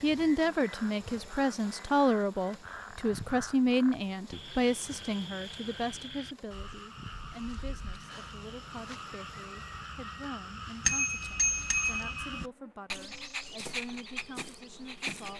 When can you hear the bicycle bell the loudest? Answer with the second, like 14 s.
11 s.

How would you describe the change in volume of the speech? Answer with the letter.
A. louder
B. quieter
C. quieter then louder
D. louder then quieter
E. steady
B.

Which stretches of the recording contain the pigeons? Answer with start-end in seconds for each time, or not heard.
not heard.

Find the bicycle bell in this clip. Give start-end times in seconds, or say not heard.
10.8-12.3.